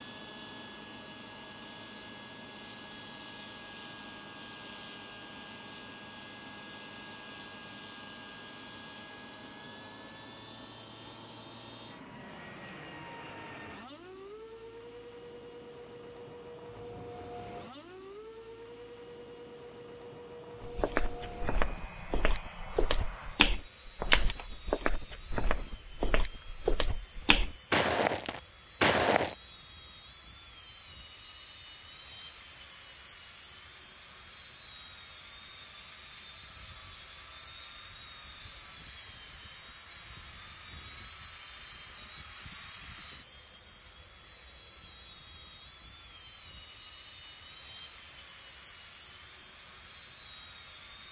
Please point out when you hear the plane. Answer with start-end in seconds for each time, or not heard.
0.0-51.0.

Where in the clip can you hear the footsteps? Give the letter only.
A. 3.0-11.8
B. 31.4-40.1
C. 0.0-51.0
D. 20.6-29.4
D.